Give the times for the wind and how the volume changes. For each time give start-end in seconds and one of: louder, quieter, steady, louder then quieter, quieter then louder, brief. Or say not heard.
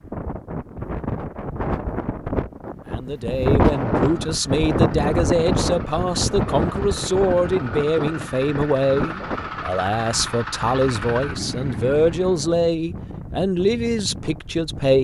0.0-14.9 louder then quieter.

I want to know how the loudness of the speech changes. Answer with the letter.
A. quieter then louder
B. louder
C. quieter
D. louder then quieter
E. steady
E.